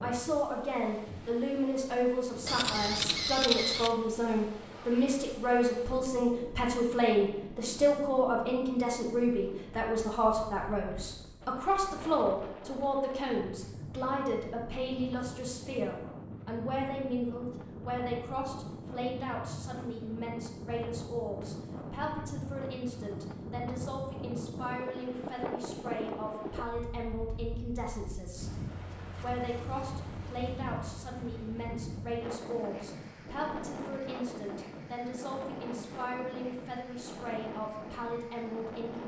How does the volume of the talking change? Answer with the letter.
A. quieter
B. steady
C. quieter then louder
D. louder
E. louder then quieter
A.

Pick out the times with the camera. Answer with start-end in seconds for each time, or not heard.
2.5-4.0.